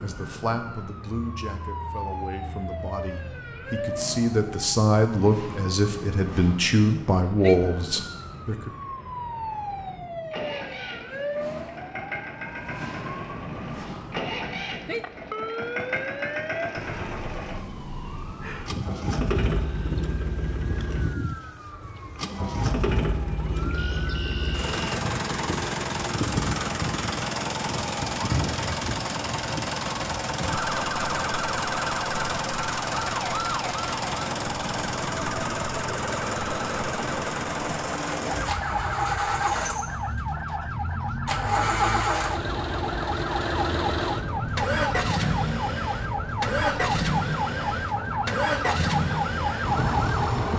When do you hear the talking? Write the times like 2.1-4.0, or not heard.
0.0-8.7.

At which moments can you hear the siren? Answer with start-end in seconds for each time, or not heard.
0.0-50.5.